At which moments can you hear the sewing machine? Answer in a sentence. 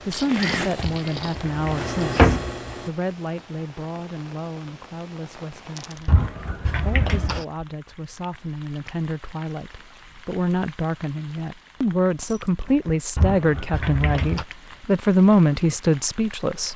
The sewing machine can be heard from 0.0 to 2.9 s.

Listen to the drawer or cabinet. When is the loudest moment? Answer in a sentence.
The volume of the drawer or cabinet peaks at 2 seconds.